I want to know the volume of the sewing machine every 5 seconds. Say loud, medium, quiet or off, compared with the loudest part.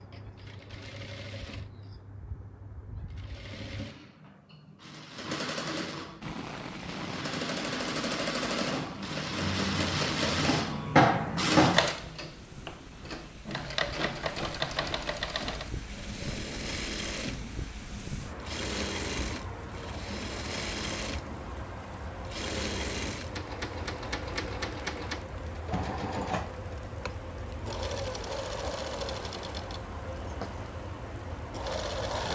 quiet, medium, loud, medium, medium, medium, medium.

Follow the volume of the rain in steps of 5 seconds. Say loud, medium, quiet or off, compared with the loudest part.
off, loud, medium, loud, loud, loud, loud.